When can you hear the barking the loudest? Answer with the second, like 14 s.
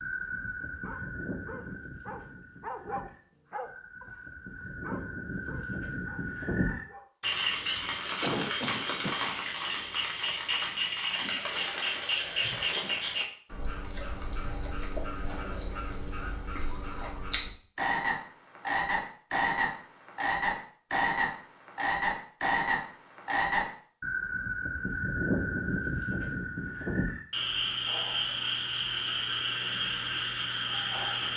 3 s.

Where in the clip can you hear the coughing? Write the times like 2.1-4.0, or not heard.
7.3-9.2.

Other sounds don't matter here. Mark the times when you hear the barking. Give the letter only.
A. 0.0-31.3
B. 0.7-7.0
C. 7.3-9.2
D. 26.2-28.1
B.